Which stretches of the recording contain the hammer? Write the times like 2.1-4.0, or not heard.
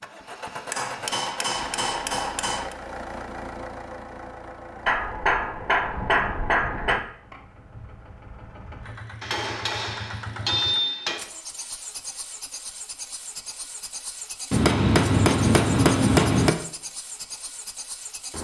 0.7-2.8, 4.8-7.0, 9.2-11.2, 14.5-16.5.